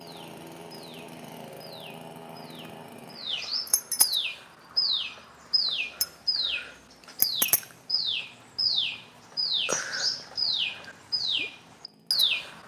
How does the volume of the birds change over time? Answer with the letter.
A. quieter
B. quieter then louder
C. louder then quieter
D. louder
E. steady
D.